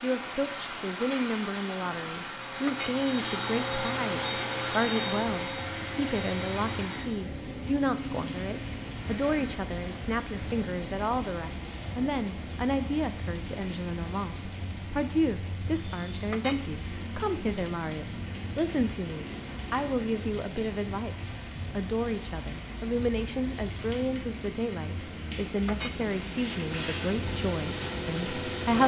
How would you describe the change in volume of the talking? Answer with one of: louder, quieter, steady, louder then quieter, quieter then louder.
steady.